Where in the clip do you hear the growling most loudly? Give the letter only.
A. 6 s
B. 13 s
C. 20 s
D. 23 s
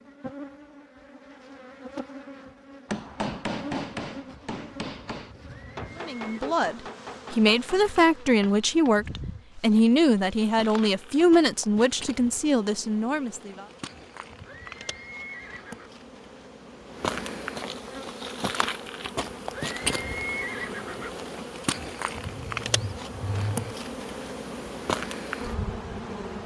D.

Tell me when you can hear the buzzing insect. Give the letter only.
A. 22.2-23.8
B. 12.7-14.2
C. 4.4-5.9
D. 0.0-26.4
D.